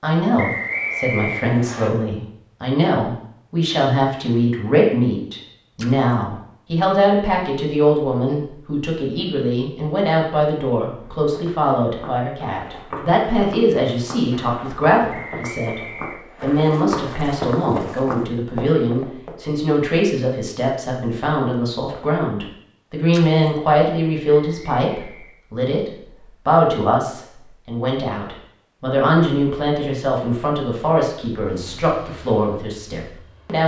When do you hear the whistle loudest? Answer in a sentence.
The loudest moment of the whistle is at 1 second.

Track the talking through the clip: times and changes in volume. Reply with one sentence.
The talking can be heard from 0.0 to 33.6 s, at a steady volume.